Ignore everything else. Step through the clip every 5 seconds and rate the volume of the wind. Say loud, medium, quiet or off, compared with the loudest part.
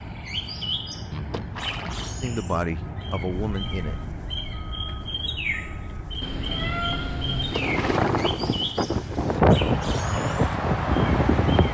quiet, loud, loud.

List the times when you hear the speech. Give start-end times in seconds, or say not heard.
2.2-4.0.